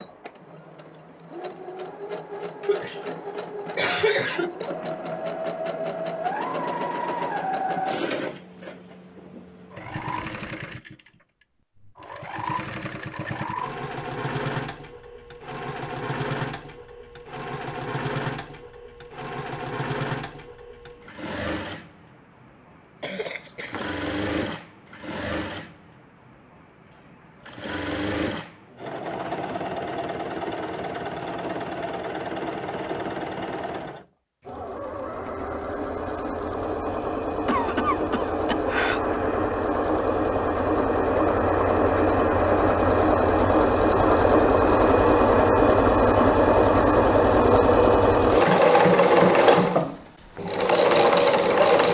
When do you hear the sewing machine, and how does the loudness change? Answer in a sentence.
The sewing machine can be heard from 0.0 to 51.8 s, getting louder.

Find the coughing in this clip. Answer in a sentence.
The coughing can be heard from 2.6 to 4.7 s, from 23.0 to 23.9 s and from 37.5 to 39.0 s.